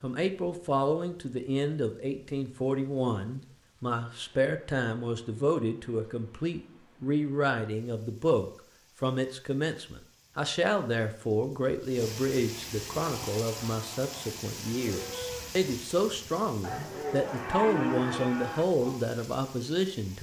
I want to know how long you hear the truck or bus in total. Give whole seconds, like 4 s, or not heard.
not heard.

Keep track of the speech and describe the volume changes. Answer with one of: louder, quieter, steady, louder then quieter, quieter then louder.
steady.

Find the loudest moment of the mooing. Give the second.
18 s.